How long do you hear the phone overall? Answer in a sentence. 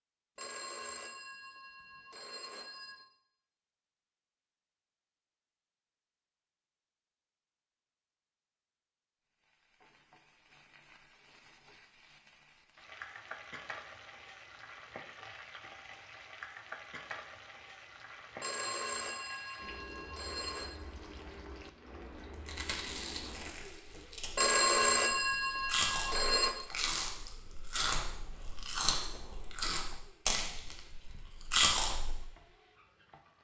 The phone can be heard for 7 seconds in total.